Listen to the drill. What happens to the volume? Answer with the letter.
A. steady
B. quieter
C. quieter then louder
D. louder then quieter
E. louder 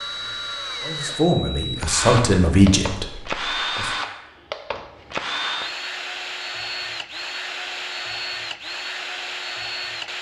A.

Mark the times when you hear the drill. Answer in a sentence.
You can hear the drill from 0.0 to 10.1 s.